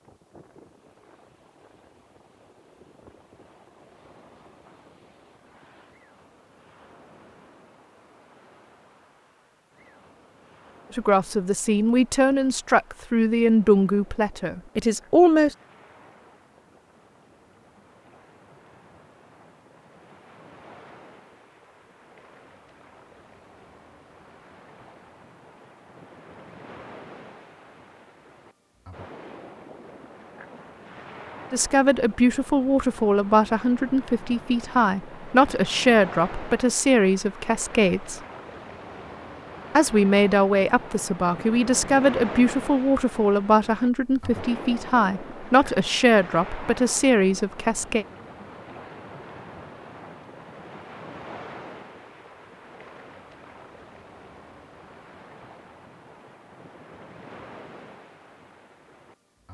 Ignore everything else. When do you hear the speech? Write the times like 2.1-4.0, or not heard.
10.9-15.6, 31.5-38.2, 39.8-48.0.